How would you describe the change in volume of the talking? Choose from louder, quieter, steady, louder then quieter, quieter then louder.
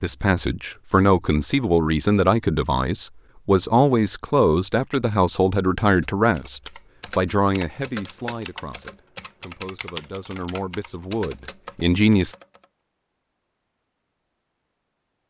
quieter.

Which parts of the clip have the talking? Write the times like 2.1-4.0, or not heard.
0.0-12.3.